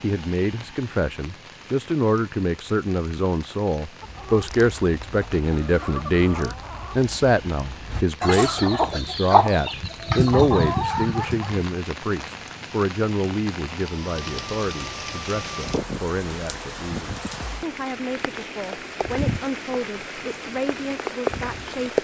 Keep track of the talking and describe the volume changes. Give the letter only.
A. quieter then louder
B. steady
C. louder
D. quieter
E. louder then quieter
D.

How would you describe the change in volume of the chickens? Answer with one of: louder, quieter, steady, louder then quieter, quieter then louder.
louder.